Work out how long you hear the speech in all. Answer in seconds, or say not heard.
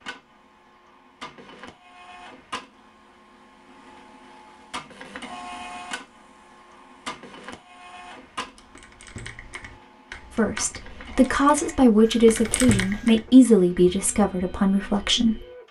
5 s.